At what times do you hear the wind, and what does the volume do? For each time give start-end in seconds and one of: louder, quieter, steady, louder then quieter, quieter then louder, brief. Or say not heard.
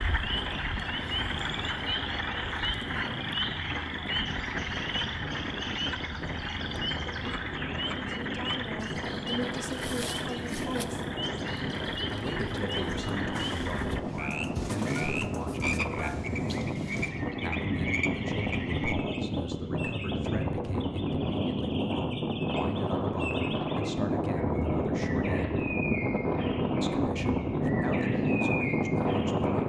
0.0-29.6 louder.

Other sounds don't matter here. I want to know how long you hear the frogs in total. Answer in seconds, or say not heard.
19 s.